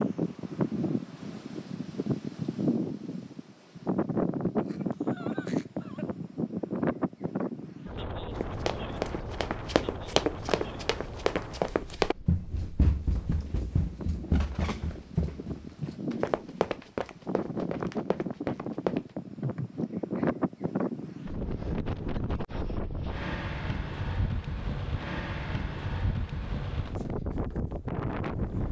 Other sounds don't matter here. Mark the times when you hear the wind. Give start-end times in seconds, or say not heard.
0.0-28.6.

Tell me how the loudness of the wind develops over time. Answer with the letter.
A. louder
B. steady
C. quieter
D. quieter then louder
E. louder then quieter
D.